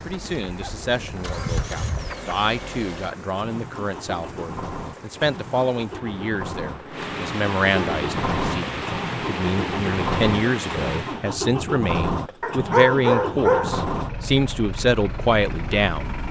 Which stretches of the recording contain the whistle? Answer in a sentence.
The whistle can't be heard in this clip.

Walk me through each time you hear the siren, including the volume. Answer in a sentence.
The siren can't be heard in this clip.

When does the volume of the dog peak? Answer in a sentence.
The volume of the dog peaks at 13 seconds.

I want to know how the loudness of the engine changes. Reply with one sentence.
The volume of the engine goes up.